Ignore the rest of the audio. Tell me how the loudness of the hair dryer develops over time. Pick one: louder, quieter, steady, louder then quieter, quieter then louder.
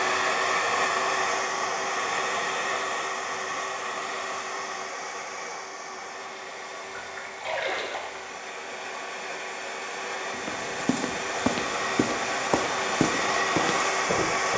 quieter then louder.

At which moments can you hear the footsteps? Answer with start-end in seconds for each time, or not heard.
10.3-14.5.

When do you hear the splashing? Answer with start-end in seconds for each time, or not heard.
6.8-8.3.